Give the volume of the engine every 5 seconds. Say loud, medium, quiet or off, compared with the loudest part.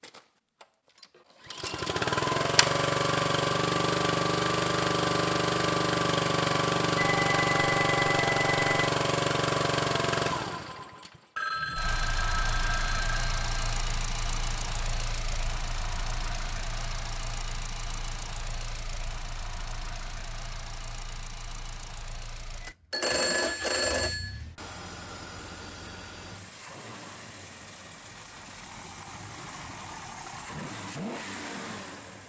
loud, loud, medium, quiet, quiet, quiet, quiet.